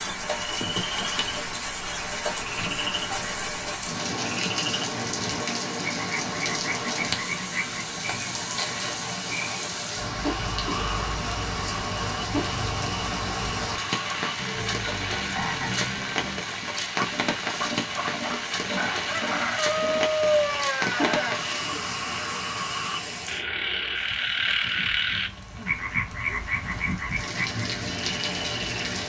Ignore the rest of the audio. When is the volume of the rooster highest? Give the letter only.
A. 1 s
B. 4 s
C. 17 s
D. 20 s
D.